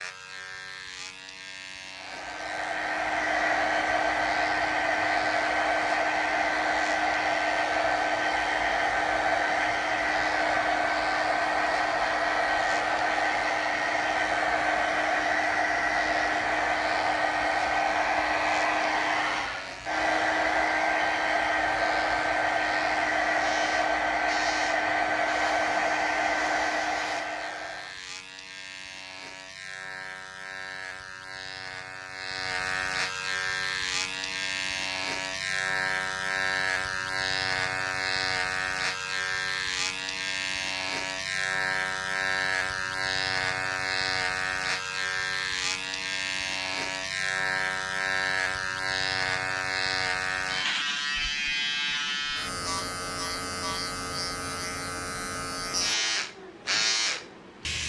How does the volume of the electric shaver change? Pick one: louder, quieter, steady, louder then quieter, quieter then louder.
louder.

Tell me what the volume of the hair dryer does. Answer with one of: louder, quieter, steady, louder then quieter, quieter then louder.
steady.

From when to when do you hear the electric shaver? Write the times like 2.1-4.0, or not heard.
0.0-57.8.